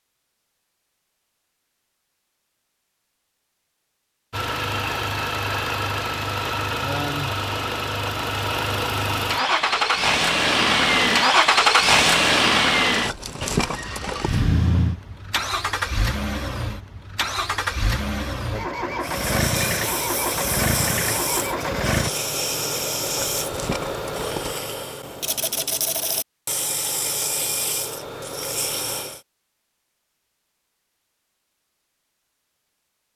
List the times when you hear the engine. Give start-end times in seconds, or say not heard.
4.3-22.1.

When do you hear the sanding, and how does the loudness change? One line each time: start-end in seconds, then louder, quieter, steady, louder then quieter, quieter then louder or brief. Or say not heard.
19.0-29.2 steady.